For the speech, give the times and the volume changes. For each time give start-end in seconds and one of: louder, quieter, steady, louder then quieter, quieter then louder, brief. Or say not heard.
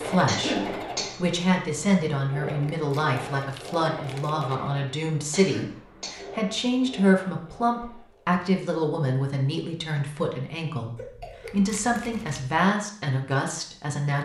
0.0-14.1 steady.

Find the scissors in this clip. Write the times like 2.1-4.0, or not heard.
not heard.